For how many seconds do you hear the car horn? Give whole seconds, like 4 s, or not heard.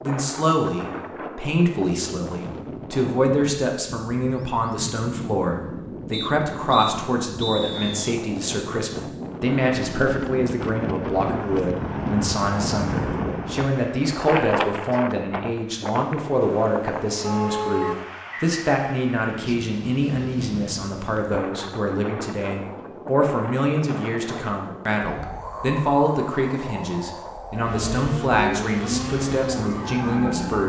2 s.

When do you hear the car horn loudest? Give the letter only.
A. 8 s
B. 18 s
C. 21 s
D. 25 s
B.